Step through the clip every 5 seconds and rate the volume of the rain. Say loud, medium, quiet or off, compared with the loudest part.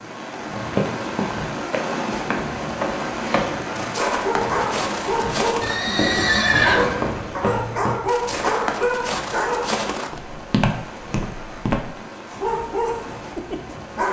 loud, medium, medium.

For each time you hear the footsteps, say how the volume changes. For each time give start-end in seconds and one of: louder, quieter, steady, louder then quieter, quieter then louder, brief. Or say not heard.
0.6-11.9 steady.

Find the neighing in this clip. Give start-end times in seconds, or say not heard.
5.6-7.2.